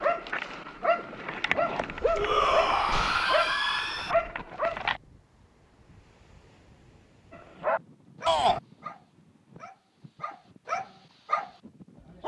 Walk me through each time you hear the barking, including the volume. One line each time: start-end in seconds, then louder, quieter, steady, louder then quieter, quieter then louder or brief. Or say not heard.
0.0-5.0 steady
7.3-12.2 quieter then louder.